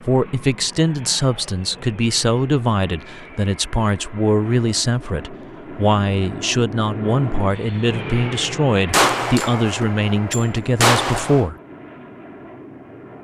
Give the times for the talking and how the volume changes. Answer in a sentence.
The talking can be heard from 0.0 to 11.6 s, at a steady volume.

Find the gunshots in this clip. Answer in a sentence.
You can hear the gunshots from 8.9 to 11.4 s.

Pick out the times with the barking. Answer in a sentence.
The barking can't be heard in this clip.